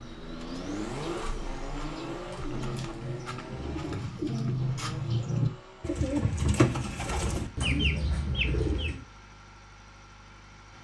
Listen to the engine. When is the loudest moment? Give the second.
1 s.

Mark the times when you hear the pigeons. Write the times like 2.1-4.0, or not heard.
0.0-9.1.